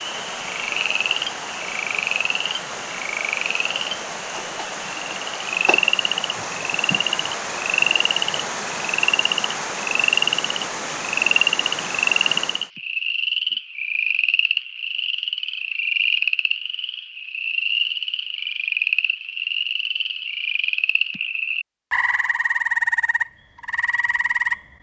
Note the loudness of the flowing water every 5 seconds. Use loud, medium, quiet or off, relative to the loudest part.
loud, loud, loud, off, off.